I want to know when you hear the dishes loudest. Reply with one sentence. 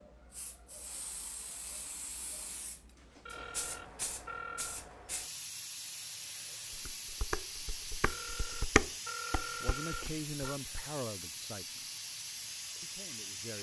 The loudest moment of the dishes is at 9 seconds.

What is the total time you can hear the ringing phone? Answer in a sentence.
You can hear the ringing phone for 4 seconds altogether.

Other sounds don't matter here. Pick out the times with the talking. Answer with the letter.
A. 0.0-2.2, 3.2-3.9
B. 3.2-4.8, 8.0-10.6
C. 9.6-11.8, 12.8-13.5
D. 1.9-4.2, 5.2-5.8
C.